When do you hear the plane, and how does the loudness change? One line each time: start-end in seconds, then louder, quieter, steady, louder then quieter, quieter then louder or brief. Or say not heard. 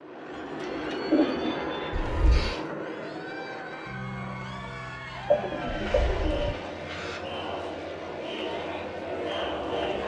0.0-10.0 quieter.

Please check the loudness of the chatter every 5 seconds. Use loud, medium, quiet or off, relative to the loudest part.
medium, loud.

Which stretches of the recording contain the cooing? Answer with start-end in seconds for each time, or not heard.
0.3-2.8, 5.2-7.2.